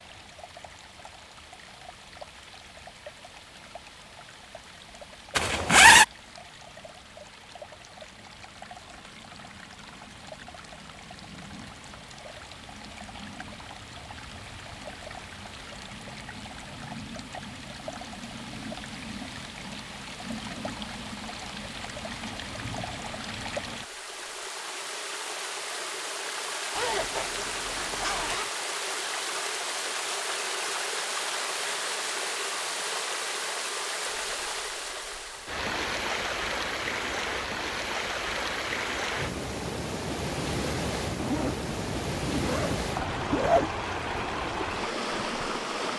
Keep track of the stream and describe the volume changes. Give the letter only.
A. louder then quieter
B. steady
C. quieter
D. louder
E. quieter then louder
D.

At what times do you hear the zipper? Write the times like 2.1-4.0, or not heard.
5.3-6.0, 26.8-28.5, 41.1-43.7.